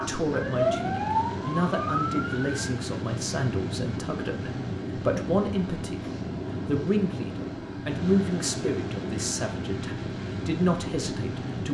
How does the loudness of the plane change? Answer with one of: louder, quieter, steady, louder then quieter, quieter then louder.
steady.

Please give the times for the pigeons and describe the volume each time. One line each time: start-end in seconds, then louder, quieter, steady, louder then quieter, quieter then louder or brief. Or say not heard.
not heard.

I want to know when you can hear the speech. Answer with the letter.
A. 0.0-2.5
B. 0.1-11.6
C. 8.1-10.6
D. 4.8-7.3
B.